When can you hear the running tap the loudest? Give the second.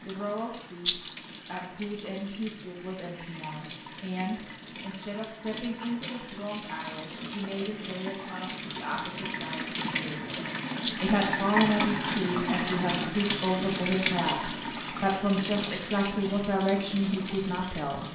12 s.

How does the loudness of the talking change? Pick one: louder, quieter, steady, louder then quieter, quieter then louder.
louder.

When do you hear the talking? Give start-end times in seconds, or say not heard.
0.0-10.4, 11.0-18.1.